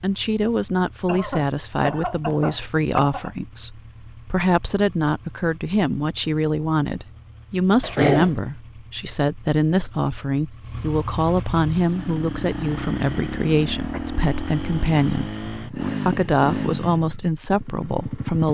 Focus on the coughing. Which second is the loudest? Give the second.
8 s.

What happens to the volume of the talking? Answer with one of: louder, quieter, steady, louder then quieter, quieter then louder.
steady.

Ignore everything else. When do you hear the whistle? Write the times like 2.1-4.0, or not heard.
not heard.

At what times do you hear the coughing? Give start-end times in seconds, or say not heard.
1.1-3.4, 7.8-8.3, 13.9-14.7.